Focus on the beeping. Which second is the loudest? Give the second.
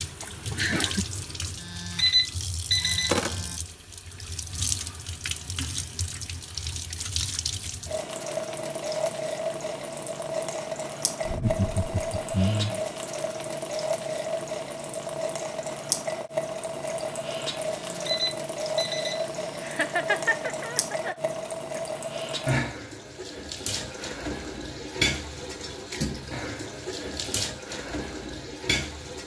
2 s.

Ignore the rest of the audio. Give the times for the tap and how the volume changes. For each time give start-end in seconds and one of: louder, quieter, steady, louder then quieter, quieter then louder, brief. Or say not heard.
0.0-29.2 steady.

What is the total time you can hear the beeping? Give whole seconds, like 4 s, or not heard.
4 s.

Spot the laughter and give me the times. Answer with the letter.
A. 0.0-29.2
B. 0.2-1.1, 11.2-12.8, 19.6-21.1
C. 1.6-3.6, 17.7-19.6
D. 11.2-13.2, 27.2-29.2
B.